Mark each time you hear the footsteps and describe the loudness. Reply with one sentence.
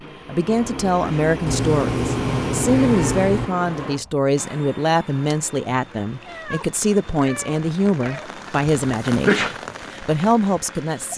The footsteps can't be heard in this clip.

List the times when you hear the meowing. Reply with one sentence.
You can hear the meowing from 1.4 to 3.5 s and from 6.2 to 8.3 s.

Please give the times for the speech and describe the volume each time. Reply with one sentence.
You can hear the speech from 0.2 to 11.1 s, at a steady volume.